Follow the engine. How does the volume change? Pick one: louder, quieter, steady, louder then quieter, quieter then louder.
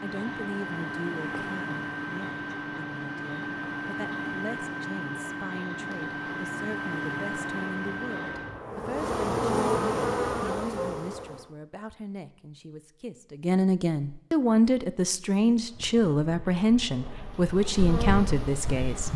steady.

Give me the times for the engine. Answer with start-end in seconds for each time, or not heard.
0.0-8.6.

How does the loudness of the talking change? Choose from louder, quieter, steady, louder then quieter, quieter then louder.
louder.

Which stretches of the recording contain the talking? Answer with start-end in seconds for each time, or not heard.
0.0-19.1.